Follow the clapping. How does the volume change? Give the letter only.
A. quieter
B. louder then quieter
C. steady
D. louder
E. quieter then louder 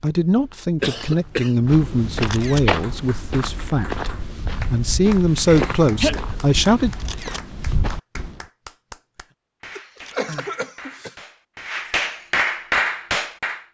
D.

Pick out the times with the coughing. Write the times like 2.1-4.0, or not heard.
0.8-1.6, 5.5-6.2, 9.8-11.1.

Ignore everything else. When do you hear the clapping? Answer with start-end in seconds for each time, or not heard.
2.6-13.7.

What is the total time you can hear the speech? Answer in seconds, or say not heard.
7 s.